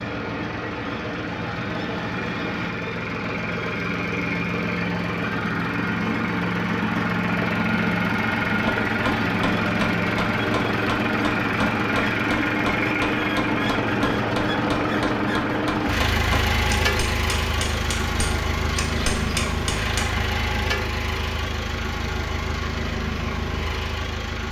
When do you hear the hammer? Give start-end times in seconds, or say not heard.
8.4-20.1.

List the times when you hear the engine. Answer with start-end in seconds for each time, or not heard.
0.0-24.4.